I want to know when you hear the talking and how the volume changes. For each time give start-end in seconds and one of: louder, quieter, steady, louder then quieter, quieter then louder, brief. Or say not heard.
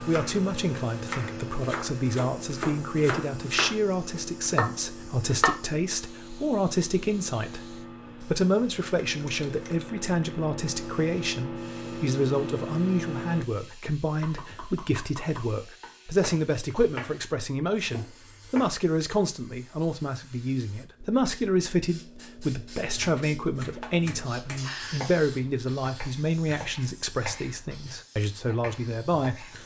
0.0-29.6 steady.